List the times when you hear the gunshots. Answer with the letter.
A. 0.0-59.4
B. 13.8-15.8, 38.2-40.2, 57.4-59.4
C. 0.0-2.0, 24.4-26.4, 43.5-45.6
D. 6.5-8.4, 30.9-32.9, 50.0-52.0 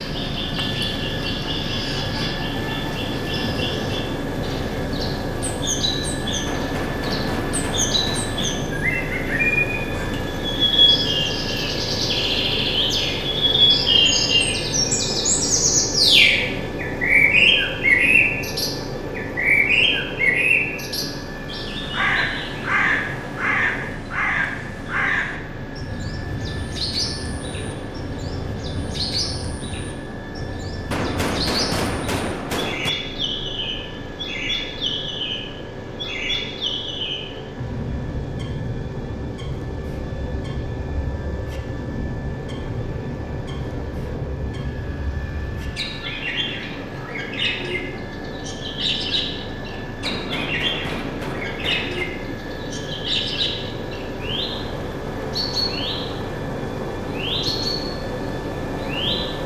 D.